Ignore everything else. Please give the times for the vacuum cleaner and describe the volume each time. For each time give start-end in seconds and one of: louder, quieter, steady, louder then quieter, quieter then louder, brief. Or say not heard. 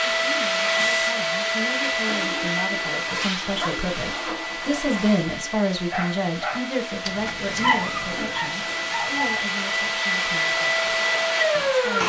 0.0-12.0 quieter then louder.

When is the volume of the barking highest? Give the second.
8 s.